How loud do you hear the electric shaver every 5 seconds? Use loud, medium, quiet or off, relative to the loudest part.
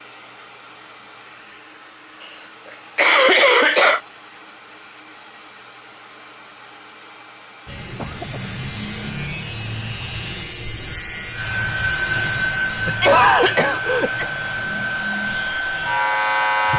off, loud, loud, loud.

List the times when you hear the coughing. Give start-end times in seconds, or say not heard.
3.0-4.0, 8.0-8.6, 12.8-14.2.